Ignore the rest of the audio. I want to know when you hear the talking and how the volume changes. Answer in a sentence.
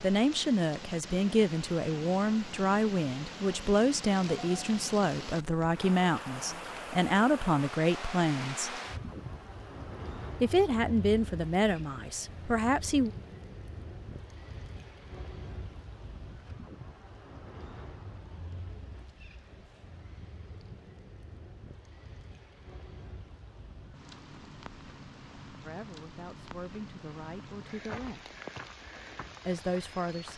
You can hear the talking from 0.0 to 8.8 s, at a steady volume; briefly from 10.4 to 13.1 s; briefly from 25.6 to 28.3 s; and briefly from 29.4 to 30.3 s.